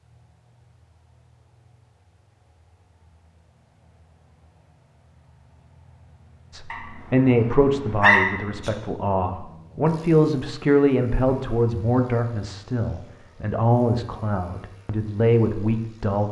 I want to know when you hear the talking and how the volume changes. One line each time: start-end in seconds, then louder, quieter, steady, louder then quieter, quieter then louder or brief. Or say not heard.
6.5-16.2 steady.